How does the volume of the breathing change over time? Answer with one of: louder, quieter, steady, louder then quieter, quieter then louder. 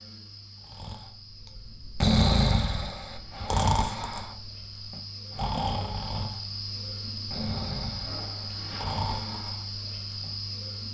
quieter.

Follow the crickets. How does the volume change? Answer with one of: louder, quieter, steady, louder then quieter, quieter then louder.
louder.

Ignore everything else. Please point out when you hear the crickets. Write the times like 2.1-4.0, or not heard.
0.0-10.9.